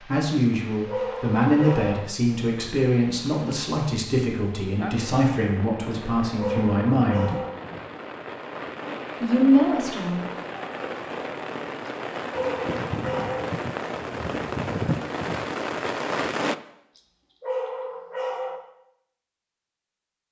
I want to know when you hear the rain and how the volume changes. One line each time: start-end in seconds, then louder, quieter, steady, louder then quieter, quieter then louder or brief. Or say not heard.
0.0-16.6 louder.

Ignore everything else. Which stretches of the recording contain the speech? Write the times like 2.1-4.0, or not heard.
0.0-7.3, 9.2-10.2.